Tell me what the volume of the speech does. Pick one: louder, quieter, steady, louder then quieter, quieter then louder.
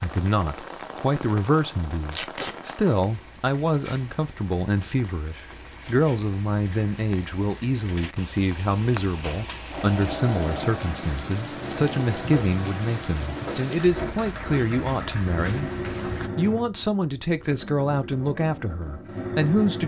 steady.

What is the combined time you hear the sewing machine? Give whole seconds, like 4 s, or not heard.
10 s.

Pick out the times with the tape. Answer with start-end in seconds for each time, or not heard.
2.1-2.5.